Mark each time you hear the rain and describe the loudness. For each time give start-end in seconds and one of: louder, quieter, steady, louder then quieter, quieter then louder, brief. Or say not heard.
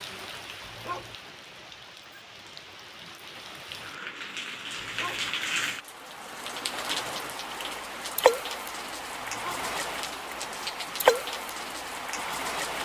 0.0-12.8 louder.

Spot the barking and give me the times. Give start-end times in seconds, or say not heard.
0.7-1.1, 4.8-5.3, 9.2-9.7.